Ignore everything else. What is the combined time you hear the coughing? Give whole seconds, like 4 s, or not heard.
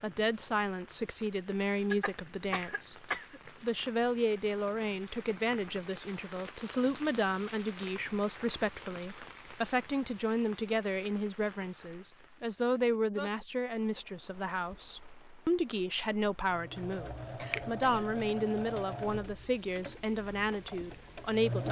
2 s.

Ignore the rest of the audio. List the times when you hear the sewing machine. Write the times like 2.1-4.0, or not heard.
16.4-21.6.